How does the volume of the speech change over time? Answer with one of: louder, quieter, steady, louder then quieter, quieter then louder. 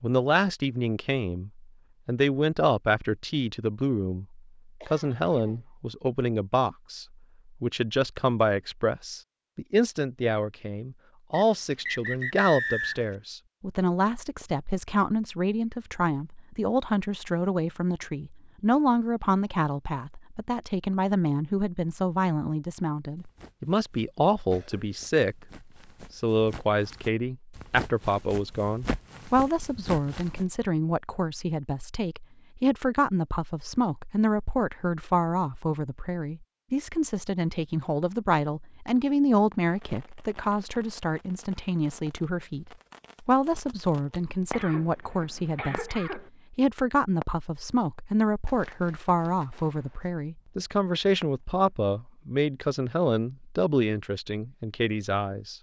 steady.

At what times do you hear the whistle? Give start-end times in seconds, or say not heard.
11.3-13.2.